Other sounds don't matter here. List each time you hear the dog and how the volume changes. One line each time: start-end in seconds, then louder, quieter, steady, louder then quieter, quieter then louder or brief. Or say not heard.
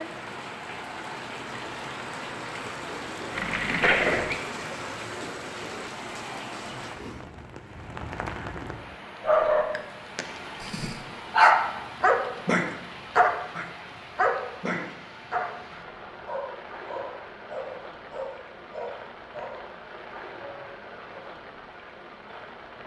9.2-20.7 quieter.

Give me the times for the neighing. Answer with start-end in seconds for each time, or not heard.
3.4-4.3.